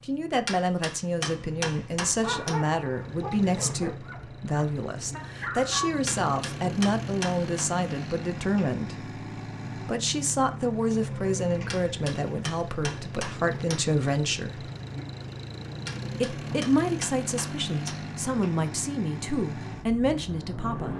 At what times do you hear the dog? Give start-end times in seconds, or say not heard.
2.1-6.0.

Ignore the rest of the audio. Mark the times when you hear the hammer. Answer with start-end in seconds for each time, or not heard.
0.5-2.6, 6.0-7.7, 11.7-13.9, 15.8-18.1.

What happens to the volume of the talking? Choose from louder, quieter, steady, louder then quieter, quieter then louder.
steady.